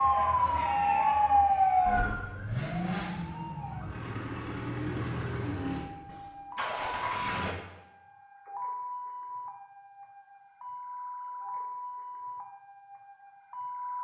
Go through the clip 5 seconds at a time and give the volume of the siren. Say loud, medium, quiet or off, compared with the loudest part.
loud, quiet, quiet.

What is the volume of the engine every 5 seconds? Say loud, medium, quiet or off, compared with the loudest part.
loud, loud, off.